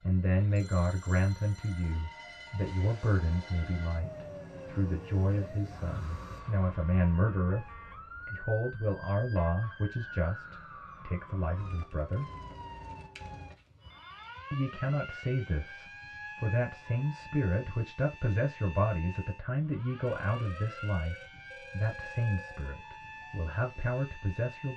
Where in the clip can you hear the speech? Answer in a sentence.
The speech can be heard from 0.0 to 12.3 s and from 14.5 to 24.7 s.